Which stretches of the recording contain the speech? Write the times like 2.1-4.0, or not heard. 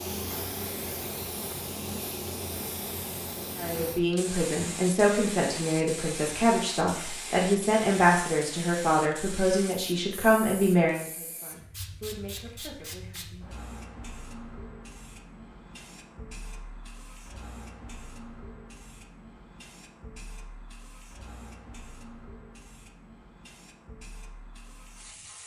3.5-13.5.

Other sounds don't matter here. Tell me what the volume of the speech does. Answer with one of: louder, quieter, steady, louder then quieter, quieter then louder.
quieter.